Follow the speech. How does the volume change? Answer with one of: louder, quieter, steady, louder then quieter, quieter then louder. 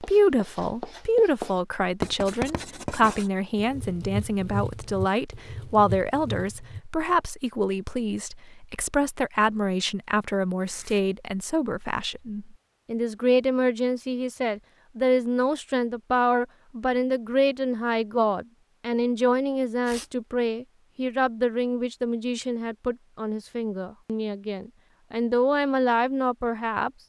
steady.